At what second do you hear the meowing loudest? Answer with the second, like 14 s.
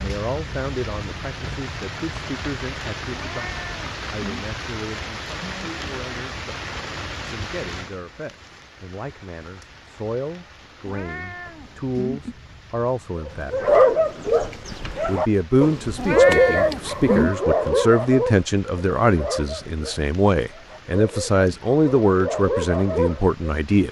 17 s.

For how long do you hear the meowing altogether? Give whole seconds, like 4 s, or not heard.
4 s.